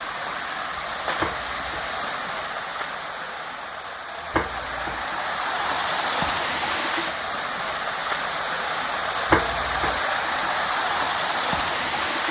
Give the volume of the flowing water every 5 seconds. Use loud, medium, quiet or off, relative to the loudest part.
medium, loud, loud.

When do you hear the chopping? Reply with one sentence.
The chopping can be heard from 1.2 to 1.9 s, from 4.3 to 5.0 s and from 9.3 to 10.0 s.